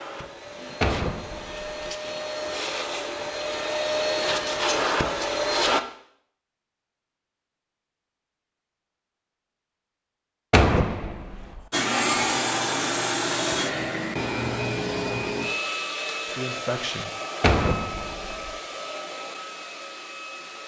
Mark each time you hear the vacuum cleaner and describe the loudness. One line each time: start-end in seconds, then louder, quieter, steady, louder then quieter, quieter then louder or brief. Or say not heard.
0.0-5.8 louder
11.7-20.6 quieter.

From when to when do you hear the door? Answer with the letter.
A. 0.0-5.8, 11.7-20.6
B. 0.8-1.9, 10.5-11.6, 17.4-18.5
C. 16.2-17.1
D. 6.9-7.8
B.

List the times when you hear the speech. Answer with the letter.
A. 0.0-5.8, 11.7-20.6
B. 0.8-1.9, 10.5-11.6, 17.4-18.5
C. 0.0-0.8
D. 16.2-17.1
D.